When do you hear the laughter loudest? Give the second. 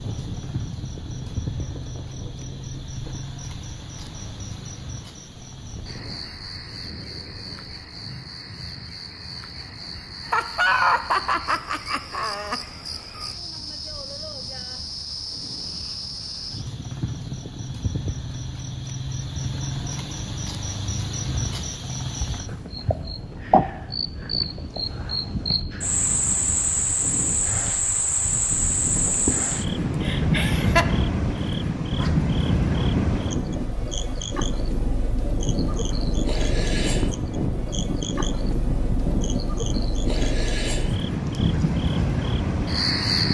11 s.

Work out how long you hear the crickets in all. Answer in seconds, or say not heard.
43 s.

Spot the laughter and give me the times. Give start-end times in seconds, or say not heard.
10.2-12.6, 30.0-30.9.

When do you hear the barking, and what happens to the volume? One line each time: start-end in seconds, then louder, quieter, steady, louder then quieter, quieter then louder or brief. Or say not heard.
not heard.